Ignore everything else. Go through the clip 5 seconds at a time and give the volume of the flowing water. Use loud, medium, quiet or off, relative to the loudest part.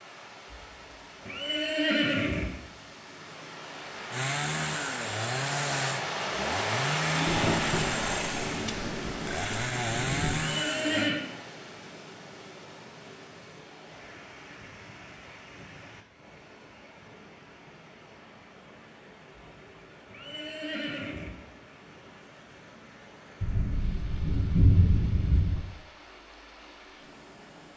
medium, loud, quiet, quiet, quiet, quiet.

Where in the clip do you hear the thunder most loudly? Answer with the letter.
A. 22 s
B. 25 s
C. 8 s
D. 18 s
B.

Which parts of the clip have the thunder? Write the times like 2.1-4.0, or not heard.
7.2-10.5, 23.4-25.6.